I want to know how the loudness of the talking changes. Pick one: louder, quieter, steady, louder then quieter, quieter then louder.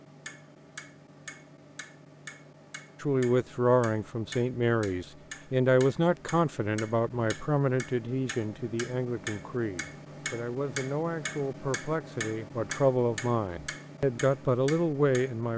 quieter then louder.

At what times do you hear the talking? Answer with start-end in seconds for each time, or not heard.
3.0-15.5.